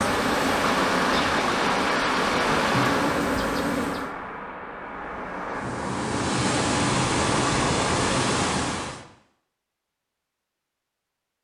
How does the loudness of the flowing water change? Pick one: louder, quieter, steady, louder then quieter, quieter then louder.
quieter then louder.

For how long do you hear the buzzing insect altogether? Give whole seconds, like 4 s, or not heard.
4 s.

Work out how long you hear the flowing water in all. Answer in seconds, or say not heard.
9 s.